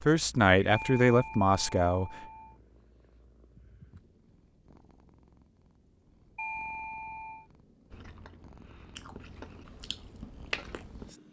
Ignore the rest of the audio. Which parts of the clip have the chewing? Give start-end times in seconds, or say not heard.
7.9-11.1.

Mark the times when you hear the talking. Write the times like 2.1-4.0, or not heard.
0.0-2.2.